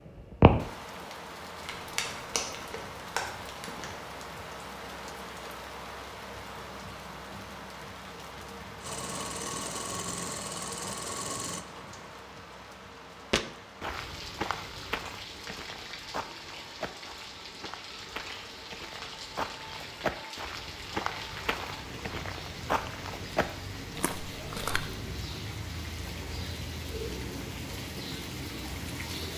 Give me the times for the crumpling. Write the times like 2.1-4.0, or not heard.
1.6-4.1.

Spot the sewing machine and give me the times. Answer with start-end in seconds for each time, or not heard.
8.8-12.2.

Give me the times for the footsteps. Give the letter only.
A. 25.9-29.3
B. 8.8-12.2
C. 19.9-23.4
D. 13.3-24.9
D.